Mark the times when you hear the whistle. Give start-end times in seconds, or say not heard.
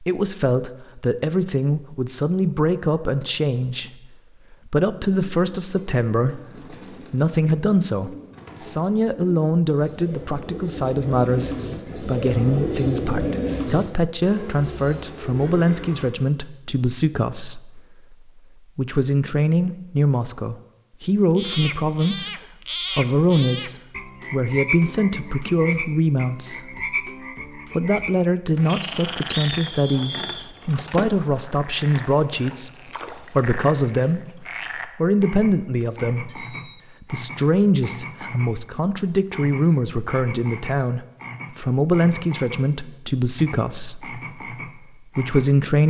28.7-30.5.